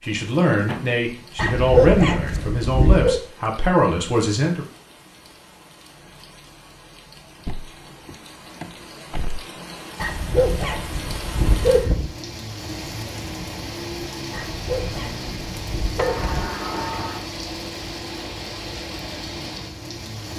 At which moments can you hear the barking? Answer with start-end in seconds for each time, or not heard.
1.4-3.2, 10.0-12.1, 14.3-16.5.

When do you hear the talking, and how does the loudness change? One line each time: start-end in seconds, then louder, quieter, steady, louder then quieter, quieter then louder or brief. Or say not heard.
0.0-4.7 steady.